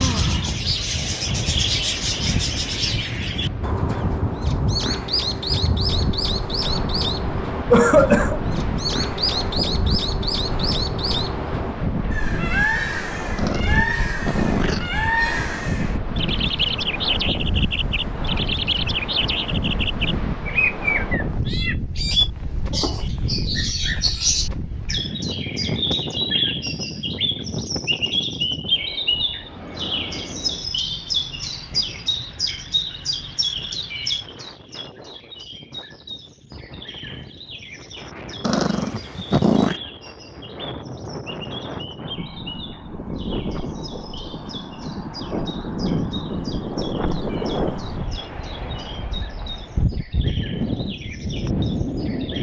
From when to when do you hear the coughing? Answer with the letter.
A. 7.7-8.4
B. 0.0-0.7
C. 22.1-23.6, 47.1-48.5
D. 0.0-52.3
A.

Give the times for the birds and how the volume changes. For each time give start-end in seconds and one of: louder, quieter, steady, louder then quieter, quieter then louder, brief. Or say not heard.
0.0-52.3 quieter.